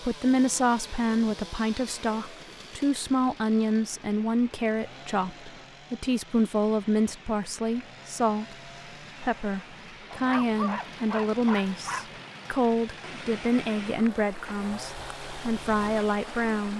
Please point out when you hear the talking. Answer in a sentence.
The talking can be heard from 0.0 to 16.7 s.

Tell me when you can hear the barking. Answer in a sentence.
The barking can be heard from 10.1 to 12.1 s.